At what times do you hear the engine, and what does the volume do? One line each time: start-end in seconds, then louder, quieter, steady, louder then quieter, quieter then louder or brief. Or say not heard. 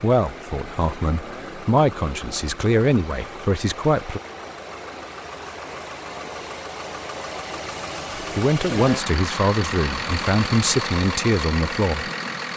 0.0-12.5 louder.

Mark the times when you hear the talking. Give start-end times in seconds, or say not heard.
0.0-4.2, 8.2-12.1.